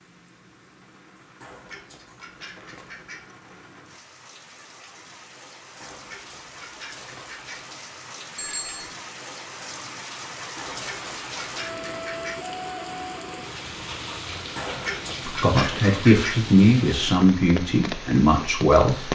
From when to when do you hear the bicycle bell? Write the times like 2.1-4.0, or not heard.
8.3-8.9.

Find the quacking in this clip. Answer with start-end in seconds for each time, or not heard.
1.4-3.2, 5.8-7.7, 10.6-12.4, 14.6-16.4.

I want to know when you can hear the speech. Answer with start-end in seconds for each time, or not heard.
15.2-19.1.